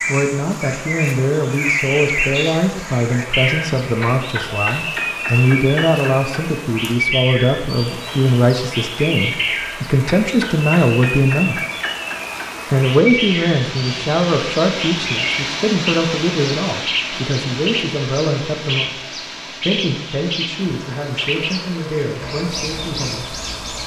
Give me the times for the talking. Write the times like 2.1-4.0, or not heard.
0.1-11.7, 12.7-19.0, 19.6-23.4.